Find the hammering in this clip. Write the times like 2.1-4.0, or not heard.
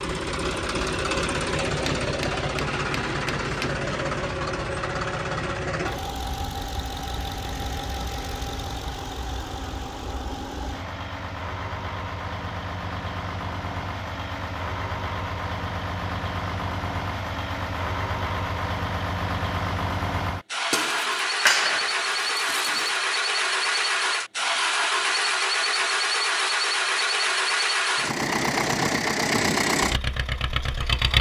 1.9-3.8, 20.7-22.9.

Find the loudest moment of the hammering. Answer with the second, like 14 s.
22 s.